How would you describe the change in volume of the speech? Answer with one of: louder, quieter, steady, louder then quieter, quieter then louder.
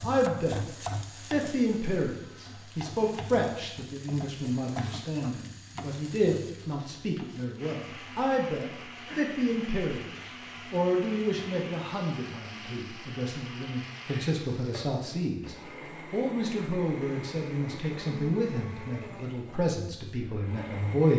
steady.